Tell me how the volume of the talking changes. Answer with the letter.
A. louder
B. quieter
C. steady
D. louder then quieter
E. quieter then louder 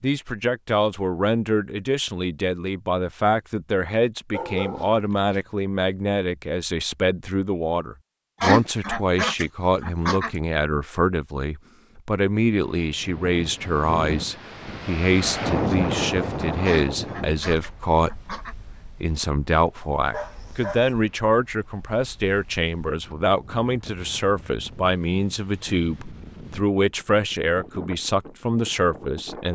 C.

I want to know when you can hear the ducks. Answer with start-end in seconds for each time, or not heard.
8.4-10.3, 16.6-18.6.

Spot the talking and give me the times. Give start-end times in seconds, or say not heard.
0.0-29.5.